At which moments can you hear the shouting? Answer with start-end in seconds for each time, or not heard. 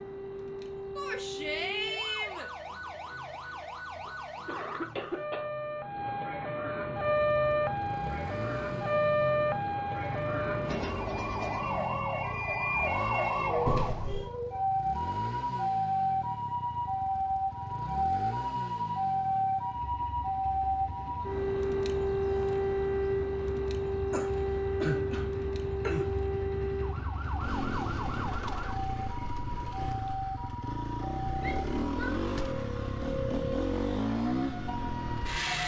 0.9-2.5, 31.4-32.1.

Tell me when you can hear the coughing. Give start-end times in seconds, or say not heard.
2.9-5.5, 13.7-14.3, 24.1-26.1.